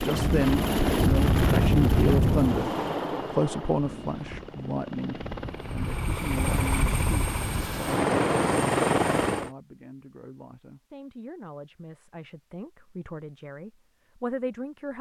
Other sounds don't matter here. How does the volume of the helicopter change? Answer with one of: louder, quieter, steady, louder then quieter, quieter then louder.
quieter then louder.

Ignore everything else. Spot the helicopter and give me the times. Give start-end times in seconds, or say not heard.
0.0-9.5.